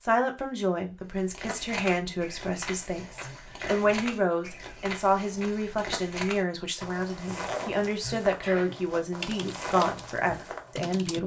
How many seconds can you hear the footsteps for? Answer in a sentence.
You can hear the footsteps for 10 seconds altogether.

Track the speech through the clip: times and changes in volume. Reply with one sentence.
The speech can be heard from 0.0 to 11.2 s, at a steady volume.